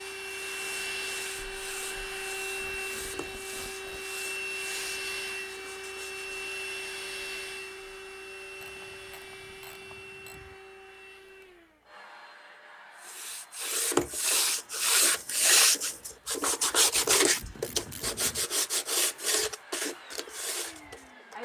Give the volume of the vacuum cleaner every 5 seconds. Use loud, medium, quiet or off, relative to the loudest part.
loud, loud, quiet, quiet, medium.